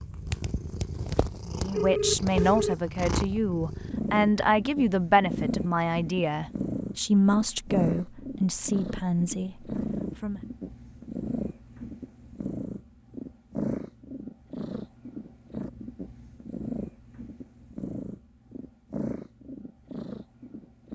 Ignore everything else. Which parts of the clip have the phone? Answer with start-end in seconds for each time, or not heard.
1.7-2.8.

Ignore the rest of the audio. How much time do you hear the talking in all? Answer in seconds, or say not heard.
9 s.